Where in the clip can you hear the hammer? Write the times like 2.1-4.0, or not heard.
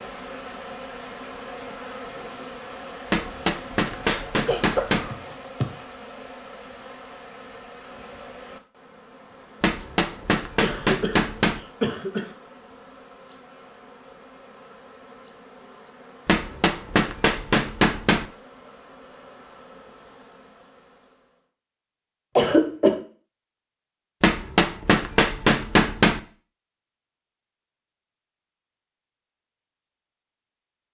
3.1-5.1, 9.6-11.6, 16.2-18.3, 24.2-26.2.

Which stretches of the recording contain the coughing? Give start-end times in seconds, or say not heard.
3.9-5.8, 10.6-11.2, 11.8-12.2, 22.4-22.9.